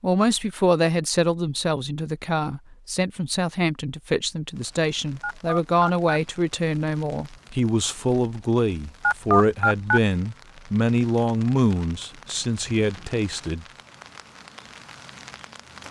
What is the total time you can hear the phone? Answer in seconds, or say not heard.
2 s.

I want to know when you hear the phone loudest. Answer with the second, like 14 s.
9 s.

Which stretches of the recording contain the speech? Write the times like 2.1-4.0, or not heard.
0.0-13.7.